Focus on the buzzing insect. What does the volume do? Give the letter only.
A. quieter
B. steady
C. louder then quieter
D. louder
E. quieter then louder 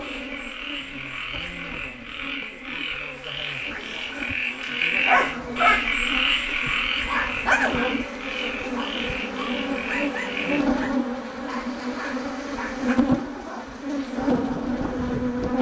D.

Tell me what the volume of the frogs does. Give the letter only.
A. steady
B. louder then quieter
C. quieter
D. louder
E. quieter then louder
B.